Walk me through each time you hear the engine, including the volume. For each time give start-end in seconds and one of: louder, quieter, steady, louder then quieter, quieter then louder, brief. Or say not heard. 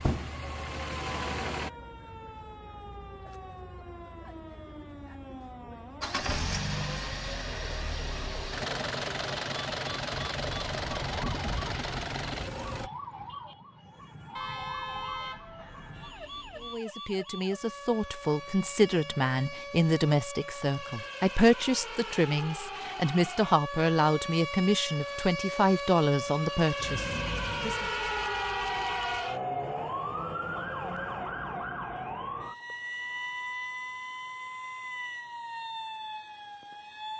0.0-1.7 brief
6.0-12.9 steady.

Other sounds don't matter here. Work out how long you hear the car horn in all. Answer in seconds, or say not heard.
5 s.